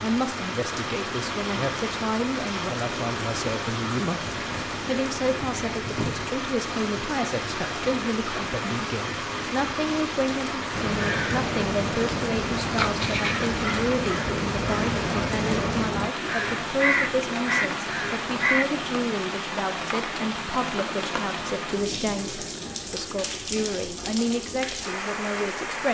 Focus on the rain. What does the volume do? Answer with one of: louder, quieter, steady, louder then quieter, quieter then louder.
steady.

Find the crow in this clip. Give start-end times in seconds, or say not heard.
10.7-18.6.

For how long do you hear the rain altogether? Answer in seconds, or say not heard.
26 s.